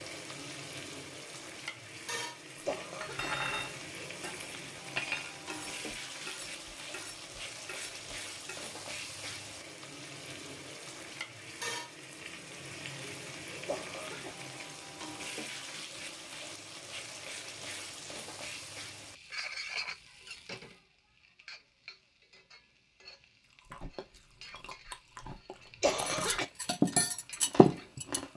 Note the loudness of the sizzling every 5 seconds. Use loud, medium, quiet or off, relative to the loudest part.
loud, loud, loud, loud, medium, quiet.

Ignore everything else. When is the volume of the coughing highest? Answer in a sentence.
The loudest moment of the coughing is at 26 seconds.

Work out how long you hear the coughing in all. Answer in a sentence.
The coughing can be heard for 2 seconds in total.